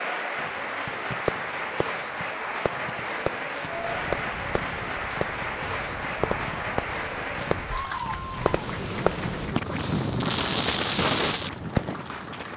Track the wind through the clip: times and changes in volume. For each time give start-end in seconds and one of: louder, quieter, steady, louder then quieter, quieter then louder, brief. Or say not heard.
3.6-12.5 louder.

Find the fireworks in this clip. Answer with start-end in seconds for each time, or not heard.
0.3-11.9.